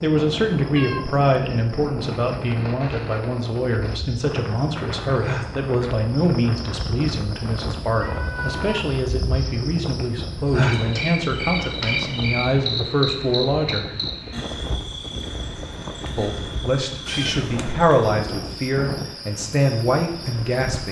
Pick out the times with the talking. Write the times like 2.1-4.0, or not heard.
0.0-13.9, 16.1-20.8.